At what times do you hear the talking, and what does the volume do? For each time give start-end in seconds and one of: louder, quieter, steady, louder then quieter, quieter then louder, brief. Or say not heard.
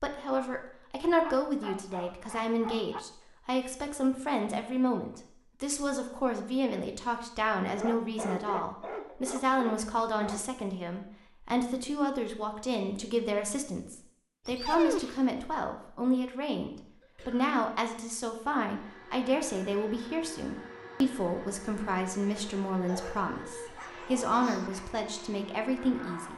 0.0-26.3 steady.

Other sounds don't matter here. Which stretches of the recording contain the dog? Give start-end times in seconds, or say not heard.
1.2-3.0, 7.7-10.4, 14.4-15.3, 22.9-24.7.